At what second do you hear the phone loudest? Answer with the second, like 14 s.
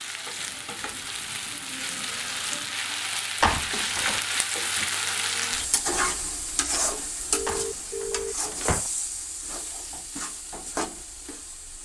8 s.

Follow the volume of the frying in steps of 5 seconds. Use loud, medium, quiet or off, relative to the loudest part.
loud, loud, medium.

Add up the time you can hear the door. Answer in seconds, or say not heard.
2 s.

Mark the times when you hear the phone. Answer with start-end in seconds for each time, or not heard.
0.3-2.8, 7.3-8.3.